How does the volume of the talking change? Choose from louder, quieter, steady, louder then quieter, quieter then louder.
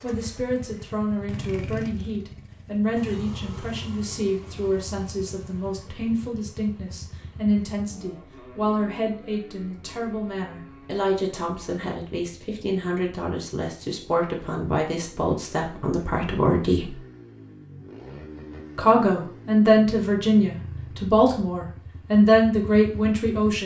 louder.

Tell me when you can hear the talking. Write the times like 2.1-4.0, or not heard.
0.0-16.9, 18.8-23.6.